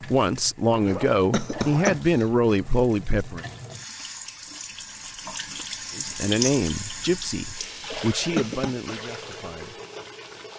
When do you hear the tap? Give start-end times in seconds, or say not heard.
0.0-10.5.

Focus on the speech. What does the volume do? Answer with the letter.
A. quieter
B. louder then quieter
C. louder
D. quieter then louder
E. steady
A.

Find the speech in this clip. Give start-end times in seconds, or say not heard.
0.0-3.5, 5.9-9.8.